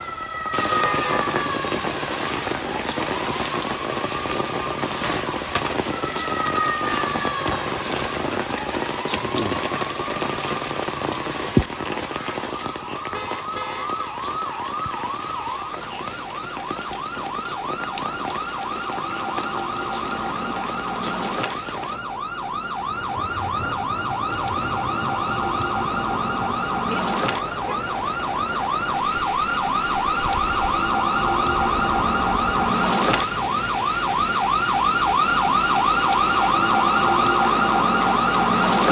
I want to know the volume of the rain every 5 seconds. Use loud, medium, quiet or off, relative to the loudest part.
loud, loud, loud, medium, medium, medium, medium, medium.